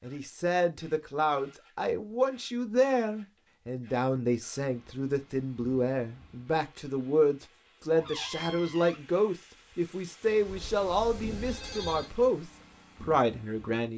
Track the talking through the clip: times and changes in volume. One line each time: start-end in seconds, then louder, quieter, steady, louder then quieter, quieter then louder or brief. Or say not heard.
0.0-13.9 steady.